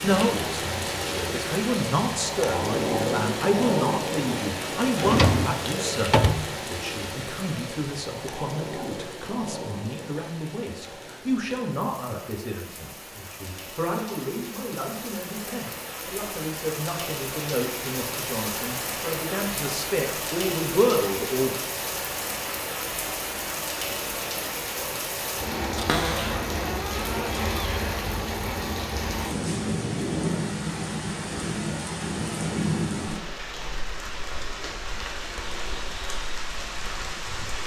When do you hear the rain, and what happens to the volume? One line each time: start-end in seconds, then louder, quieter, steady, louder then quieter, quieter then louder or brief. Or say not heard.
0.0-37.6 quieter then louder.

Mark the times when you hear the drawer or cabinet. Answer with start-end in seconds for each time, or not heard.
5.0-6.5, 25.8-27.8.